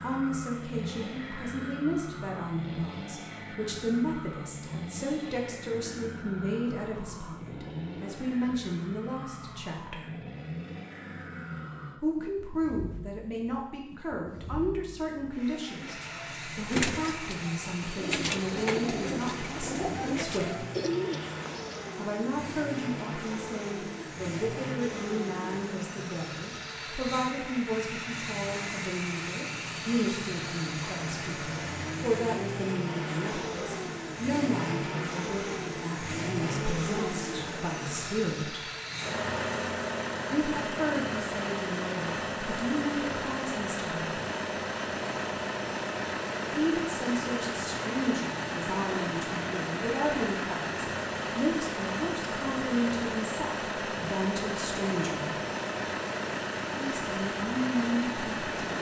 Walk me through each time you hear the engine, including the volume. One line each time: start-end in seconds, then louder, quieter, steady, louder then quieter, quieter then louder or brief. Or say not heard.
0.0-58.7 louder.